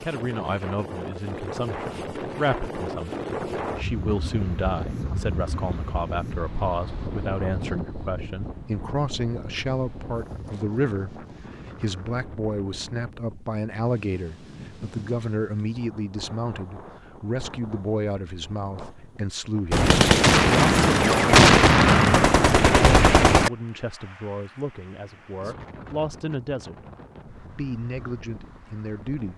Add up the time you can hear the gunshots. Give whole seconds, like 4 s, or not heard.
4 s.